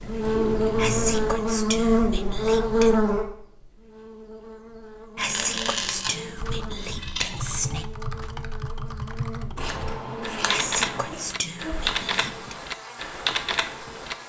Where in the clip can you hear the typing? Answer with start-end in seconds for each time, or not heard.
6.3-14.2.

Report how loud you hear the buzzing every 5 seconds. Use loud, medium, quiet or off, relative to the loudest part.
loud, quiet, quiet.